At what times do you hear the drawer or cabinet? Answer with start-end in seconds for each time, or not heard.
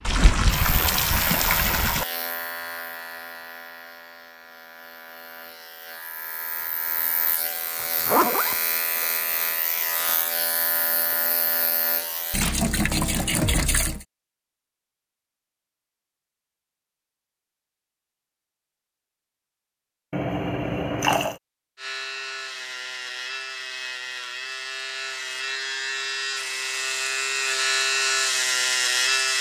not heard.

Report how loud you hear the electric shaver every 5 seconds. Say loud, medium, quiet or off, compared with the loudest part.
medium, medium, medium, off, medium, loud.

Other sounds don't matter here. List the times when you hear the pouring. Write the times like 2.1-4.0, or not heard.
0.0-2.0, 12.3-14.1, 20.1-21.4.